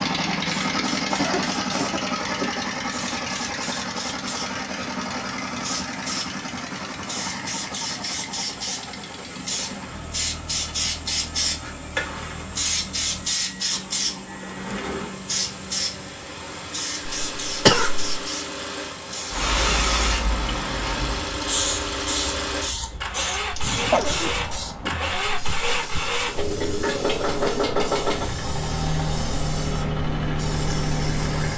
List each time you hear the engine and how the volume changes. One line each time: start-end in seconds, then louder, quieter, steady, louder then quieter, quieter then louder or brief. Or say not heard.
0.0-31.5 quieter then louder.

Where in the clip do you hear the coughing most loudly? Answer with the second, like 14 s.
18 s.